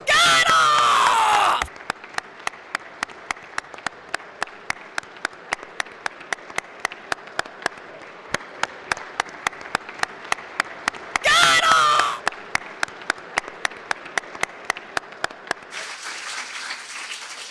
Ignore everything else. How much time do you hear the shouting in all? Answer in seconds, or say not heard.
3 s.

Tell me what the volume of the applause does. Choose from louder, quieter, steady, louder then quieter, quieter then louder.
steady.